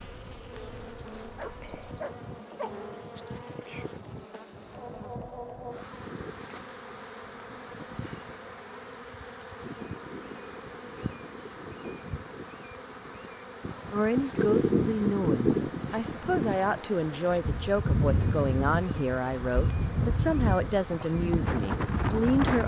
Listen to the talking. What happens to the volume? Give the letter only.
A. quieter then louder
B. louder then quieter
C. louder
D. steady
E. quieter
D.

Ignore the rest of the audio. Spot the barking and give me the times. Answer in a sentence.
The barking can be heard from 1.4 to 2.8 s.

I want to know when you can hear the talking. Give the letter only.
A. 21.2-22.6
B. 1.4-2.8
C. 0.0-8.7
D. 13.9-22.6
D.